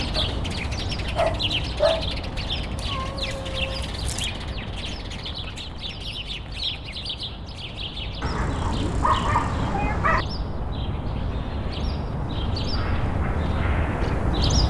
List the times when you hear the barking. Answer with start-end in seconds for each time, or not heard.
0.1-2.1, 8.2-10.2.